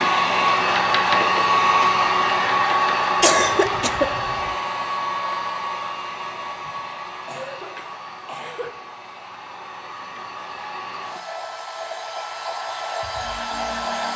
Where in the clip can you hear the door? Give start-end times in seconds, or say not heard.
not heard.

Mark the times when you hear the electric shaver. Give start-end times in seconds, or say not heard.
not heard.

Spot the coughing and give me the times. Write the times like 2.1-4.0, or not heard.
3.2-4.5, 7.2-8.7.